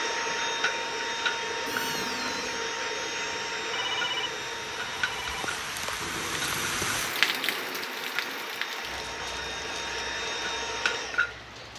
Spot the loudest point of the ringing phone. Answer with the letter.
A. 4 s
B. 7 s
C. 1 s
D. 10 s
A.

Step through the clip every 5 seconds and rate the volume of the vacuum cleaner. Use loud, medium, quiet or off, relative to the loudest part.
loud, medium, loud.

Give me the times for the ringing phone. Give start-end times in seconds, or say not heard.
3.7-5.5.